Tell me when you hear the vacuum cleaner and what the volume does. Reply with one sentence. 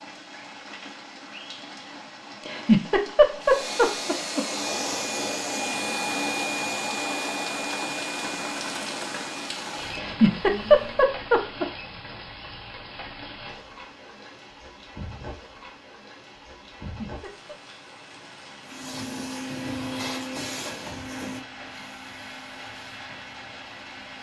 The vacuum cleaner can be heard from 3.4 to 11.1 s, getting quieter; and from 18.6 to 24.1 s, getting quieter.